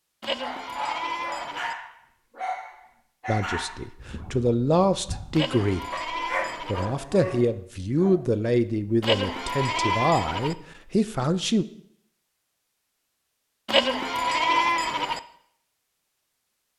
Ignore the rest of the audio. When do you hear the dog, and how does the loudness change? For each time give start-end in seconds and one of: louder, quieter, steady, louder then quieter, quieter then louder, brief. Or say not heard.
0.3-8.2 quieter then louder.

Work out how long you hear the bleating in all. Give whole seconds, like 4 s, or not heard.
6 s.